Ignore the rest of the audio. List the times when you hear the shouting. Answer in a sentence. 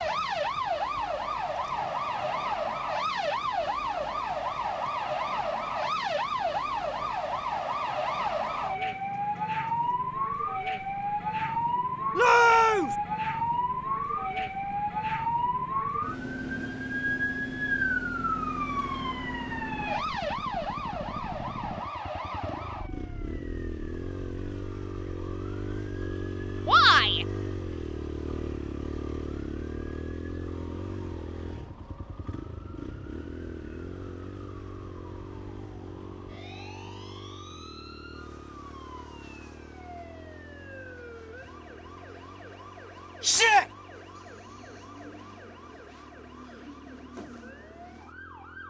You can hear the shouting from 12.2 to 12.9 s, from 26.6 to 27.2 s and from 43.2 to 43.6 s.